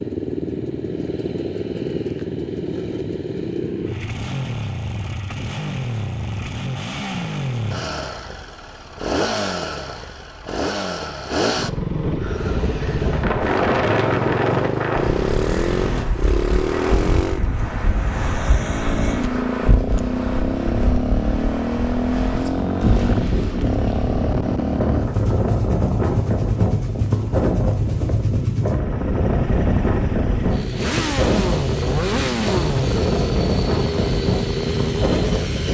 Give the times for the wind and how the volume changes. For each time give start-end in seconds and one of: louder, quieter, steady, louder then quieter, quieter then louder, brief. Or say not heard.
12.2-35.6 quieter then louder.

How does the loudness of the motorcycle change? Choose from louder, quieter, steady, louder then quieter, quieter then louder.
steady.